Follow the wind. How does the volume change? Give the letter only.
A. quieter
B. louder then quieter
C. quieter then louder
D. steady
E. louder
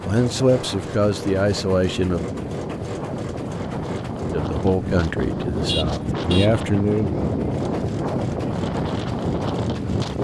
E.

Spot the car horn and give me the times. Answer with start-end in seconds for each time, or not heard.
5.5-6.5.